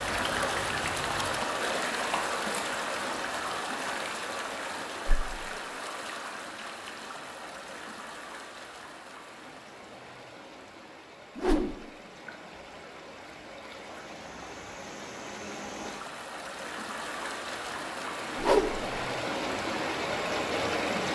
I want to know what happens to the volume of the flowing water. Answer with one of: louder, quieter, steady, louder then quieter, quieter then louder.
quieter then louder.